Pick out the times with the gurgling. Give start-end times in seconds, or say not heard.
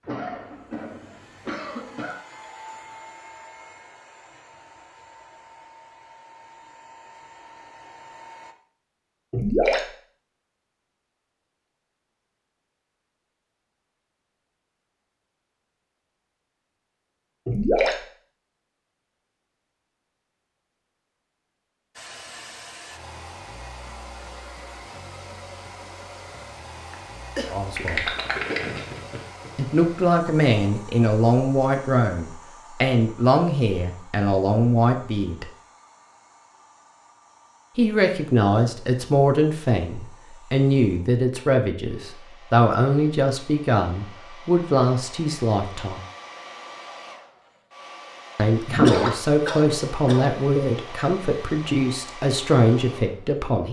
9.3-9.8, 17.4-17.9, 27.8-29.5, 48.6-49.2.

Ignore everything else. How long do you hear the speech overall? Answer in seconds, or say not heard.
20 s.